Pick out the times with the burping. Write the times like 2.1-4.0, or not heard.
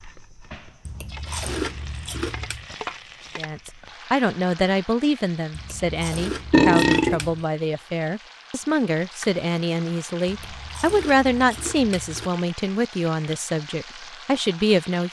6.5-7.2.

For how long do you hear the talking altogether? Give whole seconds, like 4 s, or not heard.
12 s.